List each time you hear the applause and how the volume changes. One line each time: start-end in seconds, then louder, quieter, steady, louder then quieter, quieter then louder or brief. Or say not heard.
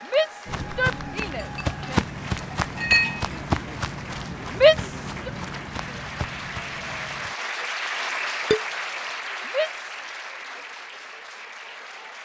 0.0-12.1 louder then quieter.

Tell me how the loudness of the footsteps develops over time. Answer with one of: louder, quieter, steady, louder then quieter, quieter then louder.
quieter.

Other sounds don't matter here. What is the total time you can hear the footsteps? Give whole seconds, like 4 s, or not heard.
7 s.